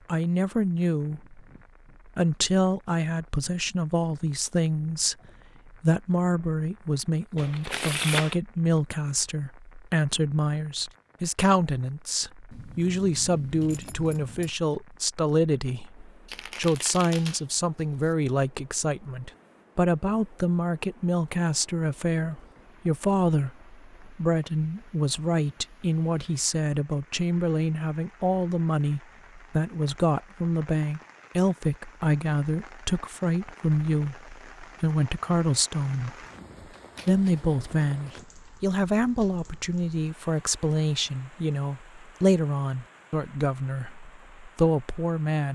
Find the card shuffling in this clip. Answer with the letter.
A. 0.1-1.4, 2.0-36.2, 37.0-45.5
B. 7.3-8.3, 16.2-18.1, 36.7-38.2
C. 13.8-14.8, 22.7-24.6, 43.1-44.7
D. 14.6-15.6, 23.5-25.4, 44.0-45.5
B.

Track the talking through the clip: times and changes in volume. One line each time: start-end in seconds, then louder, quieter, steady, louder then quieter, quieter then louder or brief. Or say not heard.
0.1-1.4 brief
2.0-36.2 steady
37.0-45.5 steady.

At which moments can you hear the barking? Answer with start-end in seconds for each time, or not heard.
not heard.